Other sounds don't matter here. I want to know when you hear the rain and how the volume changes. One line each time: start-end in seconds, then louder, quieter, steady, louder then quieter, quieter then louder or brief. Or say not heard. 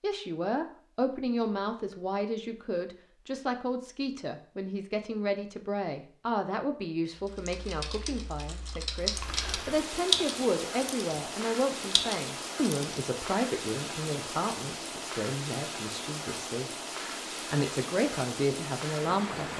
8.9-19.5 steady.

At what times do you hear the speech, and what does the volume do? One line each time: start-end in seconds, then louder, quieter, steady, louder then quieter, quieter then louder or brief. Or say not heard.
0.0-16.9 steady
17.5-19.5 brief.